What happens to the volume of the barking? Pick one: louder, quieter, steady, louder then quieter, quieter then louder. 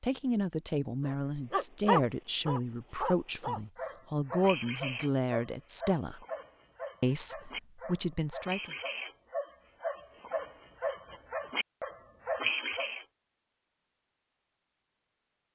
quieter then louder.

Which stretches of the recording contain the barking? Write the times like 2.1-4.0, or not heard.
1.1-13.1.